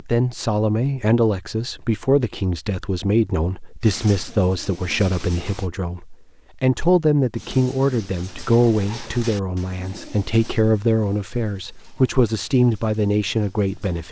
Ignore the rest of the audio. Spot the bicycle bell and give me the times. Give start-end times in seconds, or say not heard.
not heard.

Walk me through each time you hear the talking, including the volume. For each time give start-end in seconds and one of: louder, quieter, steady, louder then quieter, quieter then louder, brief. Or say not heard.
0.0-14.0 steady.